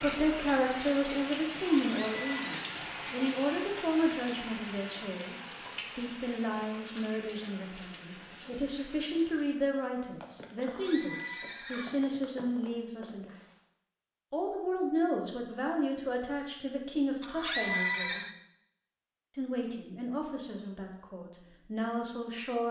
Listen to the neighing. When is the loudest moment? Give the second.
18 s.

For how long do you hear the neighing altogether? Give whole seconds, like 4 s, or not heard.
3 s.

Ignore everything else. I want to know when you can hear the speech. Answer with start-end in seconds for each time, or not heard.
0.0-13.3, 14.3-18.2, 19.4-22.6.